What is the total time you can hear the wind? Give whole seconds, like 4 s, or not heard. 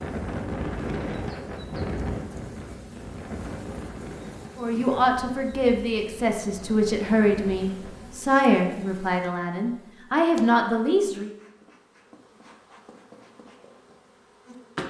8 s.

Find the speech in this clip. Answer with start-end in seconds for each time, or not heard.
4.5-11.3.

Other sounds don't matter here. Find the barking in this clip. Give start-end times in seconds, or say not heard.
not heard.